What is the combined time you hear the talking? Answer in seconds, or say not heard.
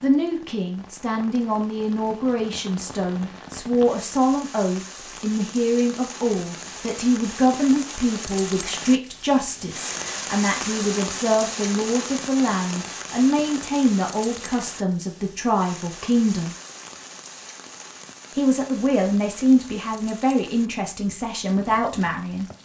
21 s.